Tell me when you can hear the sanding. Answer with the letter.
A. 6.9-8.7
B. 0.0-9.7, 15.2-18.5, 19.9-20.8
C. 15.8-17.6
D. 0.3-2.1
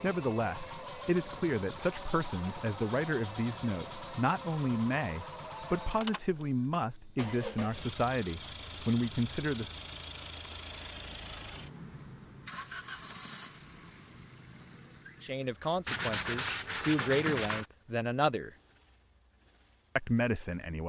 C.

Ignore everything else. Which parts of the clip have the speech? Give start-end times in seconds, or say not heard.
0.0-9.7, 15.2-18.5, 19.9-20.8.